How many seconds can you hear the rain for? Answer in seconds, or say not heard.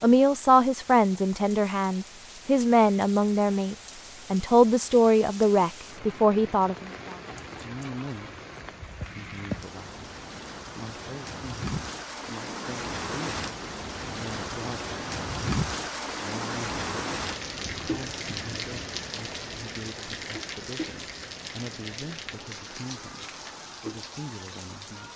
25 s.